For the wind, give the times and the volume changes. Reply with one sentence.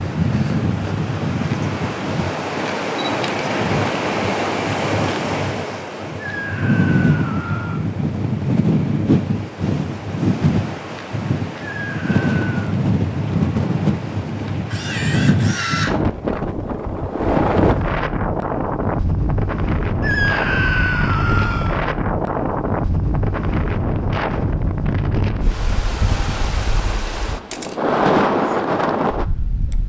You can hear the wind from 0.0 to 29.8 s, at a steady volume.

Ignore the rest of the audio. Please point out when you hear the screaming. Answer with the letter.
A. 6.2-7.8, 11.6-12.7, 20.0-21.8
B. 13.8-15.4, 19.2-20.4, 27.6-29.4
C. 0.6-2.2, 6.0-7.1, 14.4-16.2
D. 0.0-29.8
A.